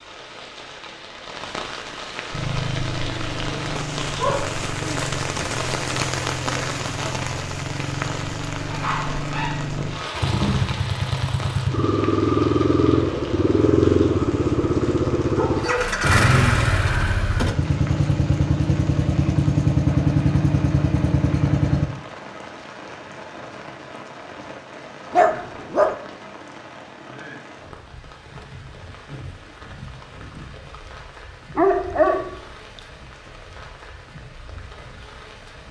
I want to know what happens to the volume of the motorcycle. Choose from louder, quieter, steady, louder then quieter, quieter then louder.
louder.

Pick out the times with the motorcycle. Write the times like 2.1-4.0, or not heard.
2.3-21.9.